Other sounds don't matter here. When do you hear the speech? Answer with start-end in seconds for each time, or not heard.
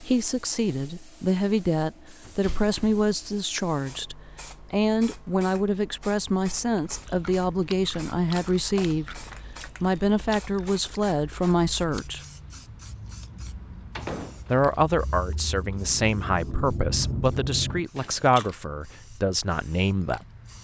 0.0-9.2, 9.8-12.2, 14.5-20.2.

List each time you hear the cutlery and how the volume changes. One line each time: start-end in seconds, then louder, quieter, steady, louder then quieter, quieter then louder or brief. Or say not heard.
not heard.